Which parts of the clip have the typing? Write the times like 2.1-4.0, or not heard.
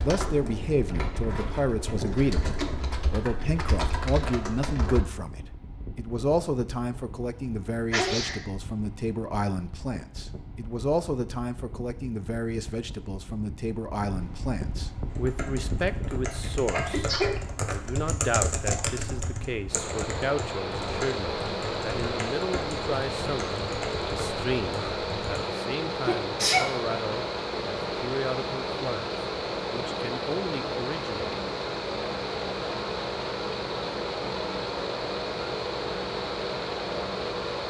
0.0-5.0, 15.1-25.4.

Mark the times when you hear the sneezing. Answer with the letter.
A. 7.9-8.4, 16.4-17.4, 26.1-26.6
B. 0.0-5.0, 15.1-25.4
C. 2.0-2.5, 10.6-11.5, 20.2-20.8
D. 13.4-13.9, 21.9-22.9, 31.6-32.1
A.